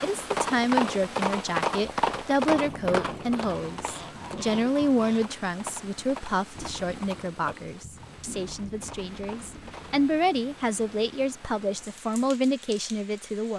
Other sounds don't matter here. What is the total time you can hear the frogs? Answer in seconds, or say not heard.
not heard.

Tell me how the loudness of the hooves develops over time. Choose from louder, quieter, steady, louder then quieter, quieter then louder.
quieter.